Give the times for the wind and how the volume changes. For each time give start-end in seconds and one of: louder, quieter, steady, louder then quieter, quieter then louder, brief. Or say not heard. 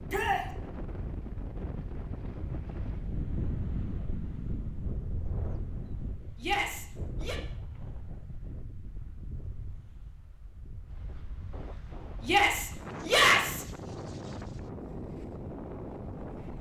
0.0-16.5 quieter then louder.